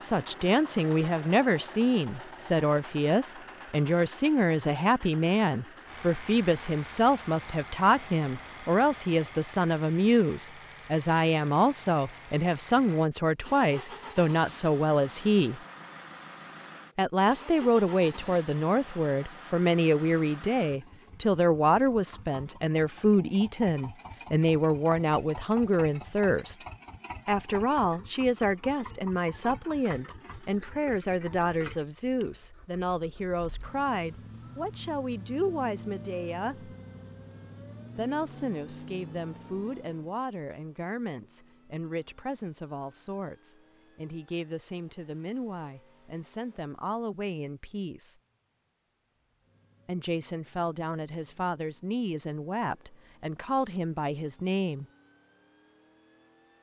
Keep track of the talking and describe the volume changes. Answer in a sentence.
The volume of the talking goes down.